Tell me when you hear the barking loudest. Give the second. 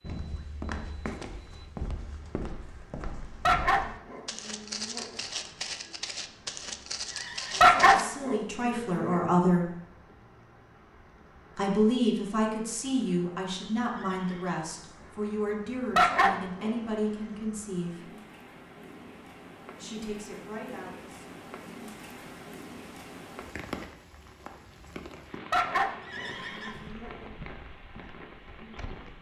8 s.